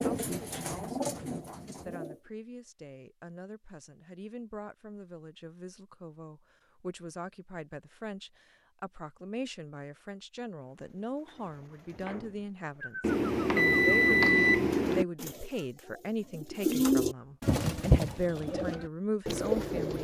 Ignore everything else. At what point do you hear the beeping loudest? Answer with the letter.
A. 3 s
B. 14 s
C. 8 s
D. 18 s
B.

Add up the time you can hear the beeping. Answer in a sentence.
You can hear the beeping for 2 seconds altogether.